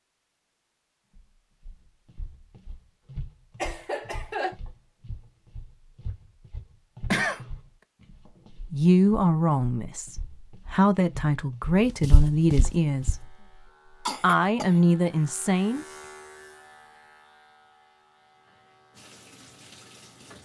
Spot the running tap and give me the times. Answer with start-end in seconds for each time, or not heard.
18.3-20.3.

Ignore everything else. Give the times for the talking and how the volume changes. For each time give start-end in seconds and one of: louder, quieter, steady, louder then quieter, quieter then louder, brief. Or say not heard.
8.5-13.3 quieter then louder
14.2-15.8 brief.